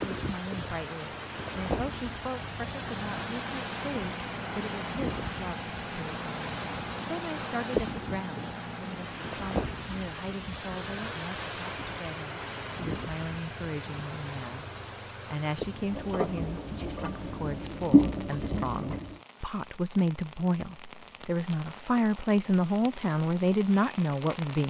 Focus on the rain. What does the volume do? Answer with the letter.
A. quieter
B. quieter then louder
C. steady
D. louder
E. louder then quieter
A.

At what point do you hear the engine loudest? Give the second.
18 s.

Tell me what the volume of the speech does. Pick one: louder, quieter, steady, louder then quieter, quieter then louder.
louder.